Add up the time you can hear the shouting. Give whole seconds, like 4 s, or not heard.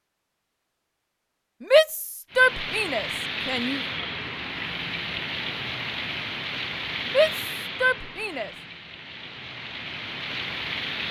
4 s.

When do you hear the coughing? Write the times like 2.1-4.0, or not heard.
not heard.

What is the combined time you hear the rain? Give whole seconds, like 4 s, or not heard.
9 s.